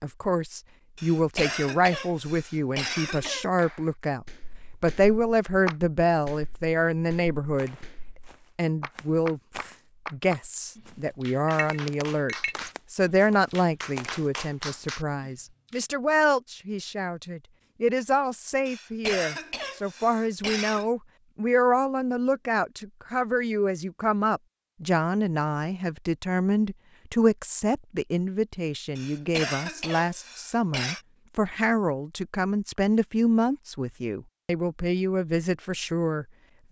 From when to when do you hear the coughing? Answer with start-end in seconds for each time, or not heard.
0.9-3.5, 18.6-20.9, 28.9-31.0.